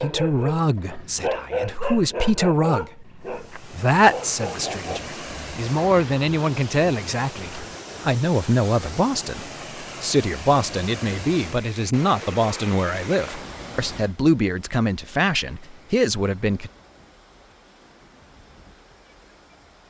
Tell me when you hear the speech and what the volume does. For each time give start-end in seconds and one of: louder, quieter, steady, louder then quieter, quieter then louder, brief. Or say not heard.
0.0-16.7 steady.